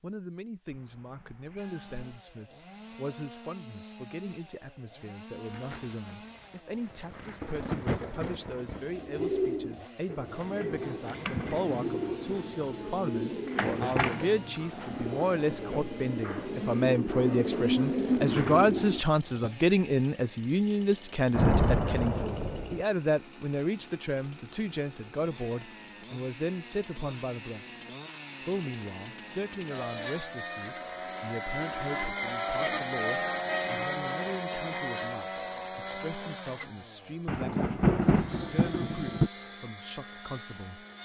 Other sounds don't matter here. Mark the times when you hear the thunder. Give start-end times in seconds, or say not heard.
5.5-8.9, 21.3-22.9, 37.2-39.3.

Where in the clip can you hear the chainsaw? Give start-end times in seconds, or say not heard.
1.6-41.0.